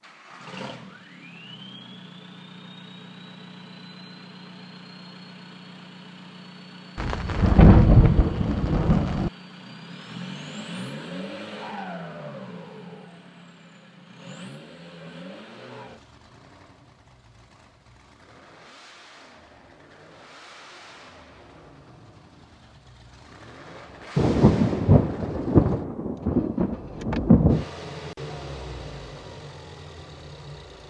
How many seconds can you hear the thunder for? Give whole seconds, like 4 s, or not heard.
6 s.